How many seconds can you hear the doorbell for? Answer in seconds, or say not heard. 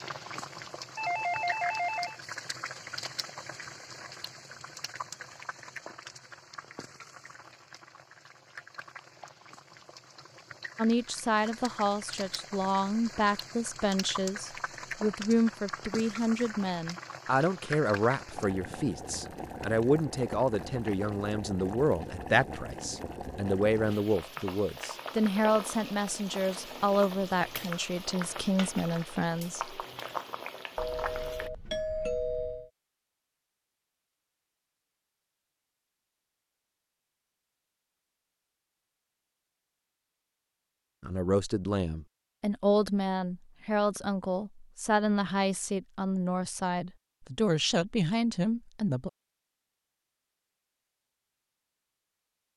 3 s.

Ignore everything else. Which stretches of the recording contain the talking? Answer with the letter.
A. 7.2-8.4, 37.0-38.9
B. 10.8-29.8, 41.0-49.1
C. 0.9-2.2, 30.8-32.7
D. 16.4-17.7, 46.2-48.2
B.